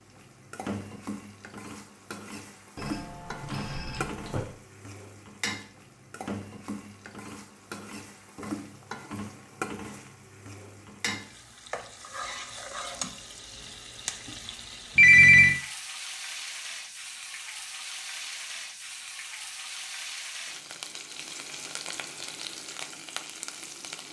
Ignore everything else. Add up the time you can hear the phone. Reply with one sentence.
The phone can be heard for 2 seconds in total.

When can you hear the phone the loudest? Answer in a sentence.
The volume of the phone peaks at 15 seconds.